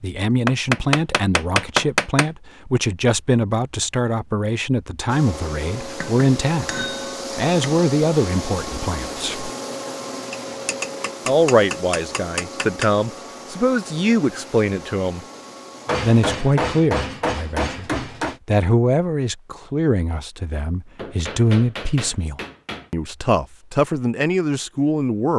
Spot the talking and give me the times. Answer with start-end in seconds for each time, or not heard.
0.0-9.5, 11.2-15.2, 16.0-25.3.